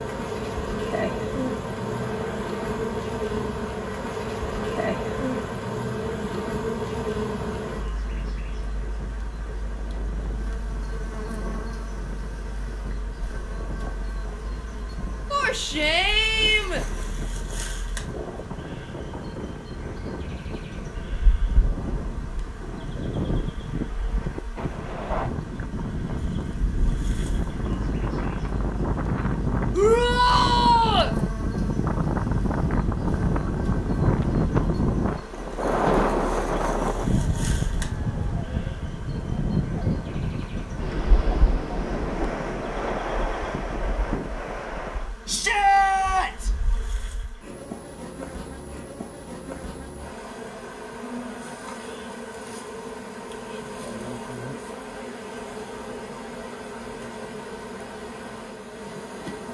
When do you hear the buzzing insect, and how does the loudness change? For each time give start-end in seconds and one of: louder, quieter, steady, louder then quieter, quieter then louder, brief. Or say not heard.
0.0-59.4 quieter then louder.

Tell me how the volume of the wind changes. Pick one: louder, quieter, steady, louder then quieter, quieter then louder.
louder.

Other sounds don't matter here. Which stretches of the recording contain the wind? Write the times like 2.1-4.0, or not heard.
0.1-45.1.